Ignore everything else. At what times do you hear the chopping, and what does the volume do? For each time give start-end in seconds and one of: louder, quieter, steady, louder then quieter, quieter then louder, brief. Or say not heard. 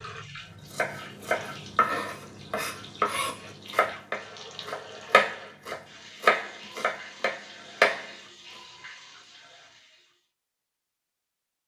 0.7-8.1 louder then quieter.